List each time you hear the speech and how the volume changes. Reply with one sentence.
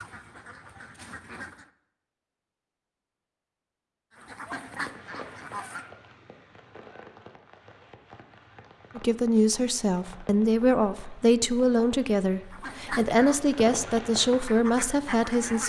The speech can be heard from 8.9 to 15.6 s, at a steady volume.